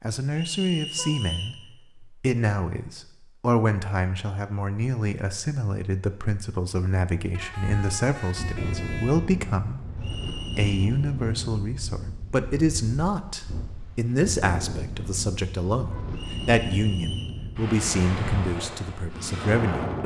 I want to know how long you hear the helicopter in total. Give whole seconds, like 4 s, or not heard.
not heard.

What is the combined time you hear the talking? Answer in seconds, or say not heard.
20 s.